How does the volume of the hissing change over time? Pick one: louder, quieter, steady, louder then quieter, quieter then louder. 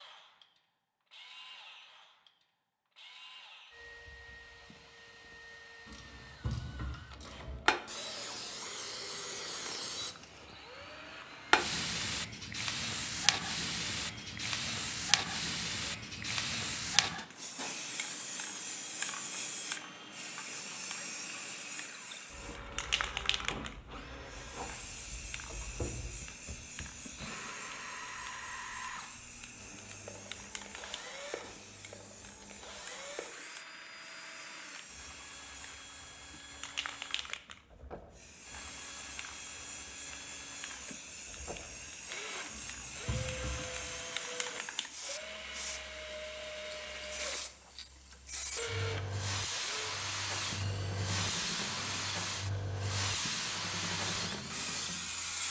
quieter then louder.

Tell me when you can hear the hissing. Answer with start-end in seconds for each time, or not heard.
7.7-55.4.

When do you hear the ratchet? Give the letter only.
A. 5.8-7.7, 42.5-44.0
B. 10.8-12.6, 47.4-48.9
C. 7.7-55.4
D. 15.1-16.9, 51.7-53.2
A.